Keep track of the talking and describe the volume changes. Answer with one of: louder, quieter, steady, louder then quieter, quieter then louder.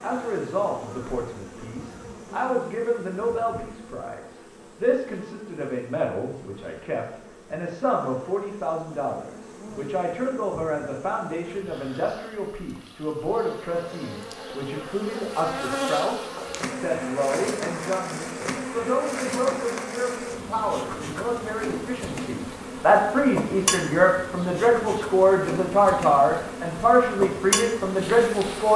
louder.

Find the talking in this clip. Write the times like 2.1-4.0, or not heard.
0.0-28.7.